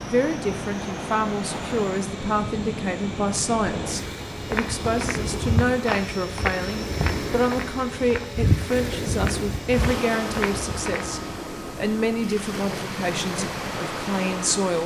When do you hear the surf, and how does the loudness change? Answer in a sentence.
You can hear the surf from 0.0 to 14.8 s, at a steady volume.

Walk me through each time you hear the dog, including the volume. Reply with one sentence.
You can't hear the dog here.